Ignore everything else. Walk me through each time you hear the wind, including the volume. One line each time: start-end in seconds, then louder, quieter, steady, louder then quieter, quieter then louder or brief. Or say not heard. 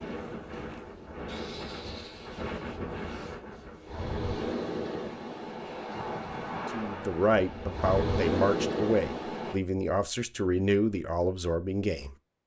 0.0-9.6 louder.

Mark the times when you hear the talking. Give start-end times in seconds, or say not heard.
6.7-12.2.